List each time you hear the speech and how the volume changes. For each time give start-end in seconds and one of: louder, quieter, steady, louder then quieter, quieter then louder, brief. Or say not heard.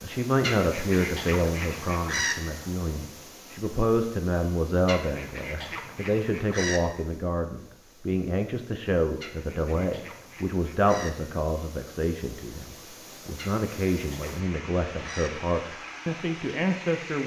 0.0-17.2 steady.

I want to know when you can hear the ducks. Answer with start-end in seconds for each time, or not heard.
0.4-2.4, 4.8-6.8, 9.2-11.1, 13.3-15.3.